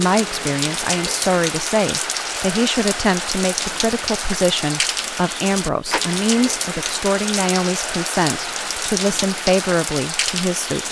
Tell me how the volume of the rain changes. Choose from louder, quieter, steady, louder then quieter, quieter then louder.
steady.